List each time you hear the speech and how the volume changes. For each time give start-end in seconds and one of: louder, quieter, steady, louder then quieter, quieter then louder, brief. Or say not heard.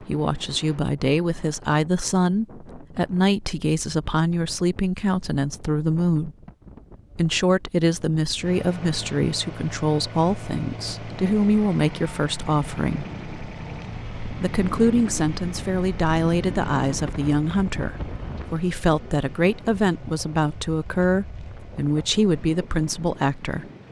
0.0-6.3 steady
7.2-13.1 steady
14.4-23.6 steady.